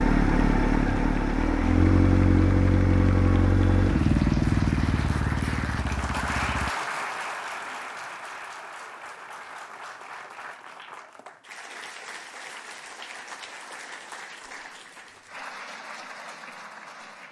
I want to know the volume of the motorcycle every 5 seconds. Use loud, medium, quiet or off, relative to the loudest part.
loud, medium, off, off.